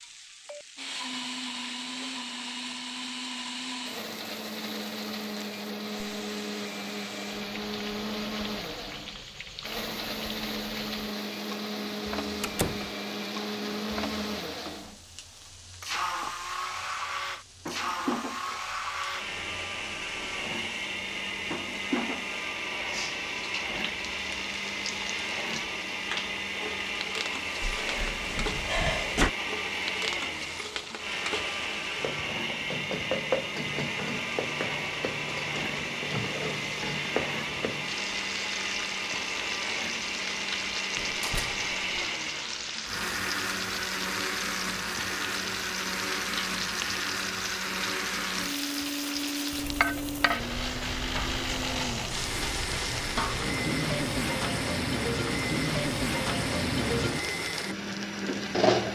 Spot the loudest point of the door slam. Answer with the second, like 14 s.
29 s.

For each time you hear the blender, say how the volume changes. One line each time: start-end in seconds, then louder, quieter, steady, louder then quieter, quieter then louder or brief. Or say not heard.
0.0-58.9 steady.